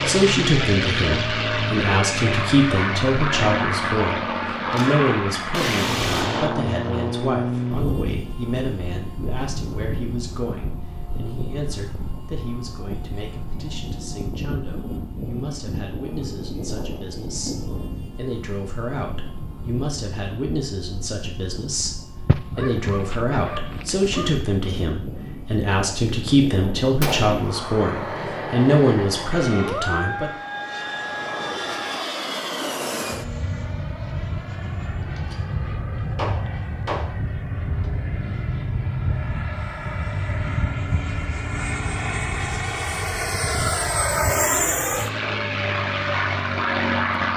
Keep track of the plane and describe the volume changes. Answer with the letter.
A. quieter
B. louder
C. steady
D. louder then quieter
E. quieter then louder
E.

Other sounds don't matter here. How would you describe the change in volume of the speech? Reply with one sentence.
The volume of the speech goes down, then up.